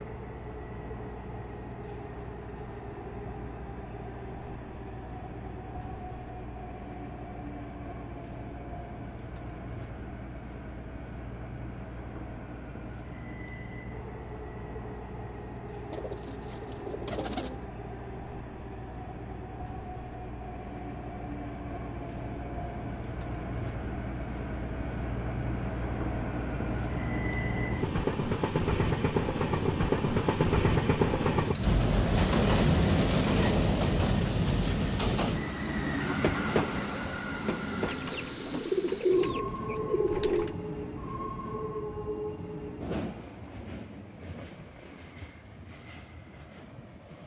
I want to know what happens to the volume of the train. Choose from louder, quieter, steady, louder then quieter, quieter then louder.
louder then quieter.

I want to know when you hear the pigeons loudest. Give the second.
39 s.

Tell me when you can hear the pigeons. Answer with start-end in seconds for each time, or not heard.
15.9-17.6, 37.9-40.5.